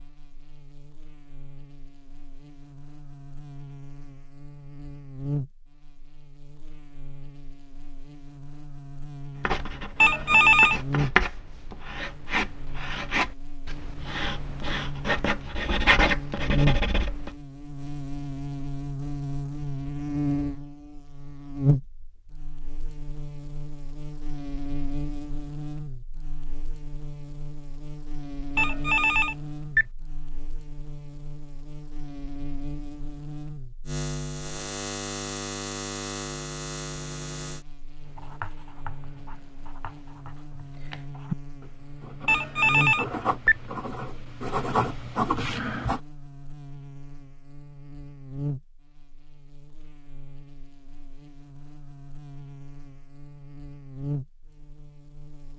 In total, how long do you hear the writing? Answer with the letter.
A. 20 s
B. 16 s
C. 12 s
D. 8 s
B.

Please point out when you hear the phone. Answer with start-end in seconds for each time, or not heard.
10.0-10.8, 28.6-29.9, 42.2-43.5.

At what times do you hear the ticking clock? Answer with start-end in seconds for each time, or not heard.
not heard.